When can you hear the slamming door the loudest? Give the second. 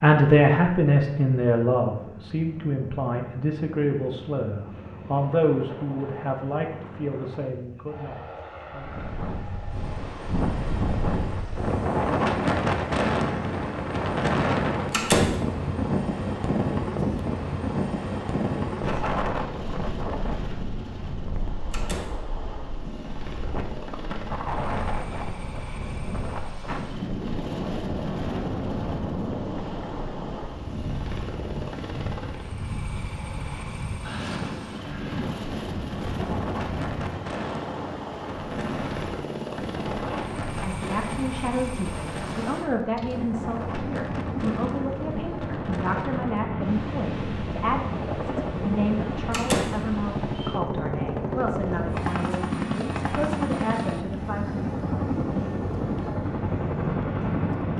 15 s.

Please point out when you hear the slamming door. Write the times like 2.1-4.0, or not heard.
14.9-15.4, 21.7-22.1, 49.3-49.8.